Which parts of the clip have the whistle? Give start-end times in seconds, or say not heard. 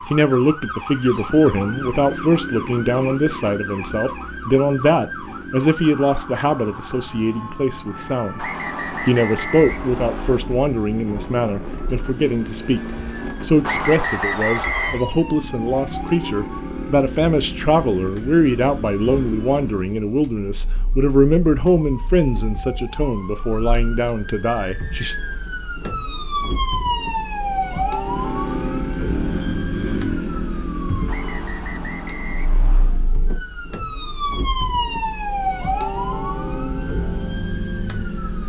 8.3-10.4, 13.6-15.0, 31.1-33.0.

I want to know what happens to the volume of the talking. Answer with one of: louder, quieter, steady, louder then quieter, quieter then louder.
steady.